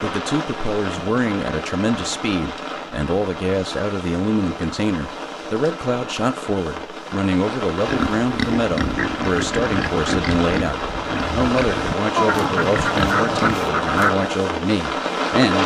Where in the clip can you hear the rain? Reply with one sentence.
You can hear the rain from 0.0 to 15.6 s.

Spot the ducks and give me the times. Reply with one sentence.
You can hear the ducks from 12.2 to 14.2 s.